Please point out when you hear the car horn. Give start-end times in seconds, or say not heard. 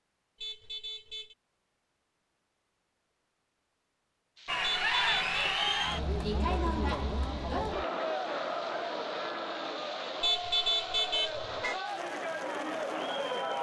0.4-1.4, 4.6-5.4, 10.2-11.8.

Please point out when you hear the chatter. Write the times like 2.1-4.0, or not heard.
4.5-13.5.